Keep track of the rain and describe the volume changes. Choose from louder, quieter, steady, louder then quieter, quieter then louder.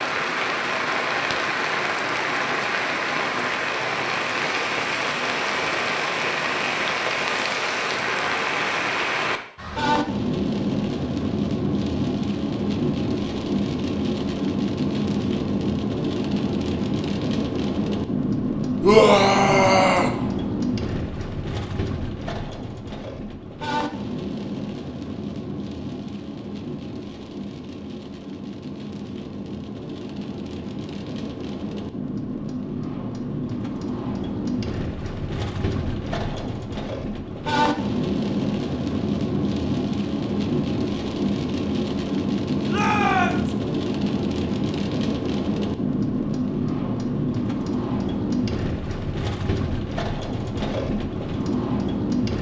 quieter then louder.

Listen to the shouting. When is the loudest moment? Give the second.
19 s.